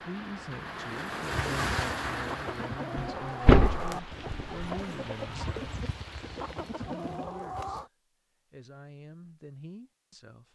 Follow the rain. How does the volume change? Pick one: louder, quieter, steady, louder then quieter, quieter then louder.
quieter.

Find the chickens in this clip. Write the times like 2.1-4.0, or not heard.
1.3-7.9.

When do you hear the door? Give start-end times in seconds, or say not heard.
3.0-4.8.